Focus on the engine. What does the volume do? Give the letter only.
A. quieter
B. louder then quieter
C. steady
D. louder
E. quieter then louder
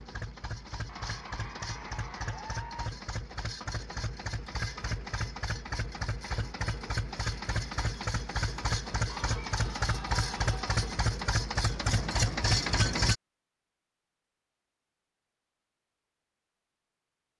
D.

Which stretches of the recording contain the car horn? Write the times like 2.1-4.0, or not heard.
not heard.